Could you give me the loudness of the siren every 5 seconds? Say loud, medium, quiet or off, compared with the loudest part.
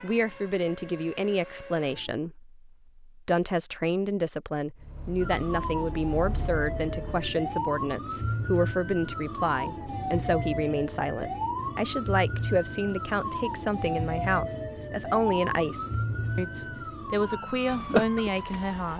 quiet, loud, loud, loud.